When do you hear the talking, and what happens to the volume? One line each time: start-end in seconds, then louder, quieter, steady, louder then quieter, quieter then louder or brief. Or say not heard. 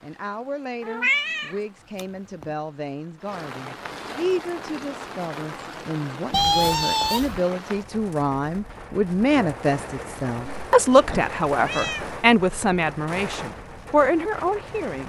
0.0-15.0 louder.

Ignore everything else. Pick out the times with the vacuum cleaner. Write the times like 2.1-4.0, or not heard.
not heard.